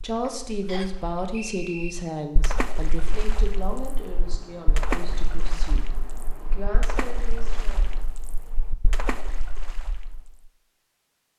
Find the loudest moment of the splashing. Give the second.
5 s.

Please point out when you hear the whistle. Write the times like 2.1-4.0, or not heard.
0.7-1.9.